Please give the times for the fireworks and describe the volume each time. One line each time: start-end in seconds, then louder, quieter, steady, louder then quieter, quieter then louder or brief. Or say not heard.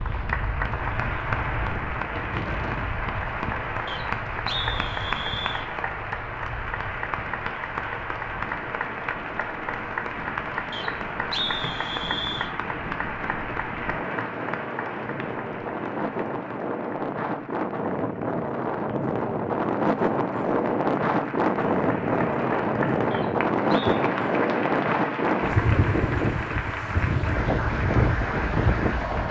not heard.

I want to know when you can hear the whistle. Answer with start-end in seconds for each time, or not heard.
3.9-5.7, 10.7-12.5, 23.1-24.0.